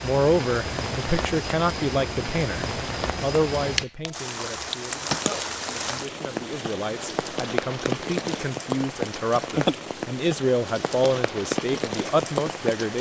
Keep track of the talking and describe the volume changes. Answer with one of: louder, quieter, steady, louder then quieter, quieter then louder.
quieter then louder.